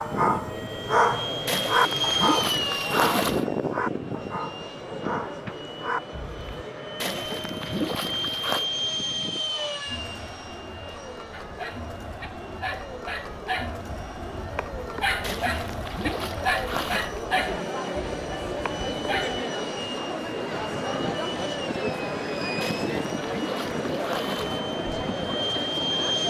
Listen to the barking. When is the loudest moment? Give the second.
1 s.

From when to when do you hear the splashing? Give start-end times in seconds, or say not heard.
1.4-3.5, 7.0-8.7, 15.2-17.1, 22.6-24.6.